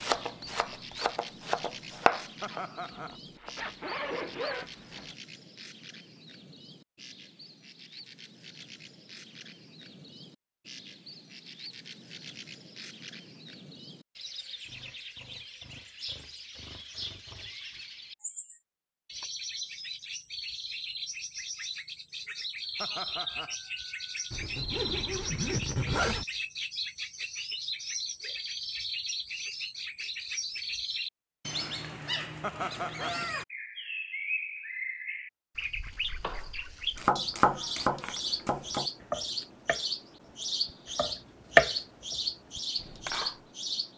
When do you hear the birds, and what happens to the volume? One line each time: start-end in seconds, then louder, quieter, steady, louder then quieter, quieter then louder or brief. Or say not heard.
0.0-43.9 louder.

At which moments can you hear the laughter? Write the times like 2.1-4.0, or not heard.
2.4-3.2, 22.8-23.6, 32.4-33.2.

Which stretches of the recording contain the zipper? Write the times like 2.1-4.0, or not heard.
3.5-5.2, 24.3-26.2.